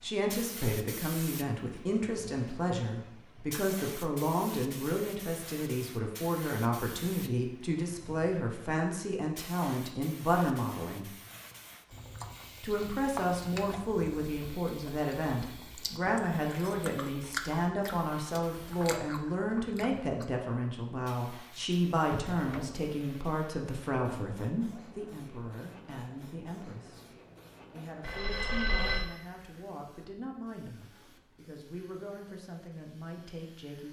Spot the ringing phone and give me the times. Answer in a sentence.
You can hear the ringing phone from 28.0 to 29.1 s.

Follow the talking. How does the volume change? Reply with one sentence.
The volume of the talking goes down.